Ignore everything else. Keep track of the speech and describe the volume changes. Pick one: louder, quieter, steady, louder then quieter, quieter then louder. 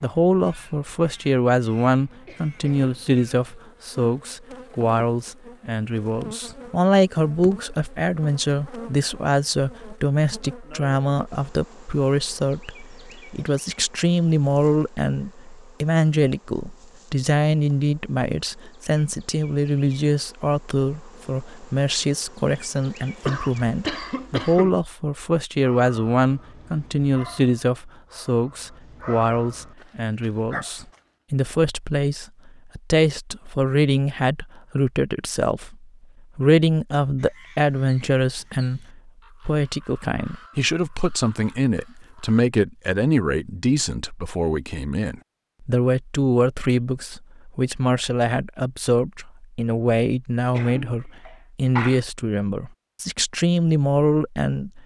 steady.